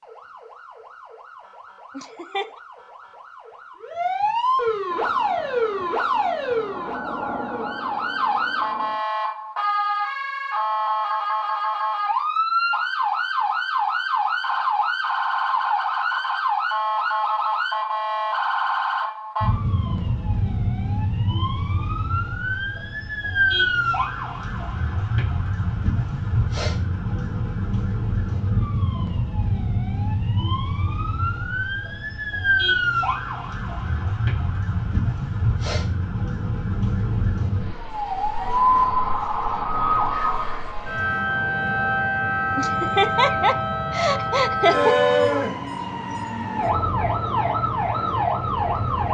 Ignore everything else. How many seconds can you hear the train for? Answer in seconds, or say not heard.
4 s.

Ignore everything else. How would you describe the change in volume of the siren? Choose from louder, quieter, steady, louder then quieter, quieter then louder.
steady.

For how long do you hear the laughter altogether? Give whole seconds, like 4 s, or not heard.
3 s.